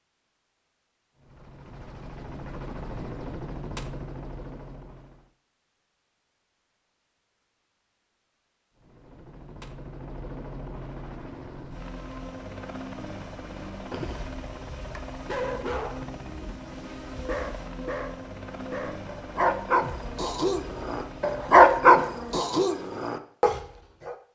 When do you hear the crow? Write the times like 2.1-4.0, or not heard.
not heard.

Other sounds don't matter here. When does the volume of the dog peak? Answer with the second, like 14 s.
22 s.